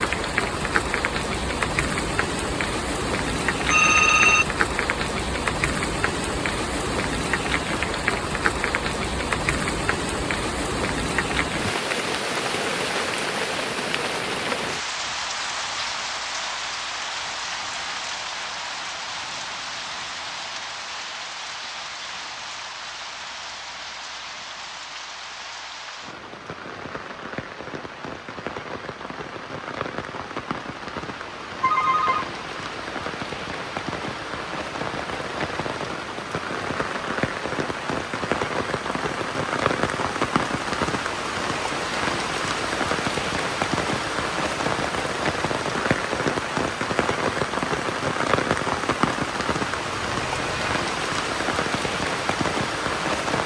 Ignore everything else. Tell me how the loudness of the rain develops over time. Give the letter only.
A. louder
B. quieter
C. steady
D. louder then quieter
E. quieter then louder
E.